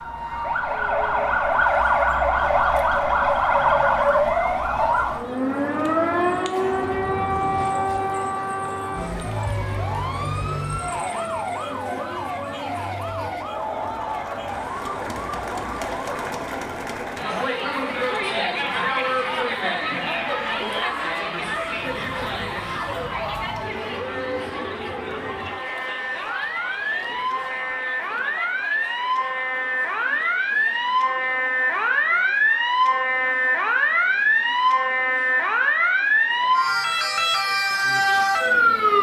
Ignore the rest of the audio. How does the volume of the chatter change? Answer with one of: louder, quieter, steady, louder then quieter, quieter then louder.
louder then quieter.